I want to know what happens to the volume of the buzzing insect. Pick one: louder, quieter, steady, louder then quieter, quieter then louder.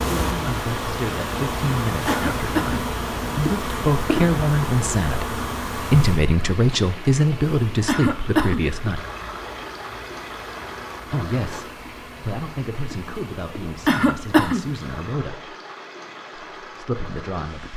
quieter.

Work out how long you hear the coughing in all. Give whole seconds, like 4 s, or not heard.
2 s.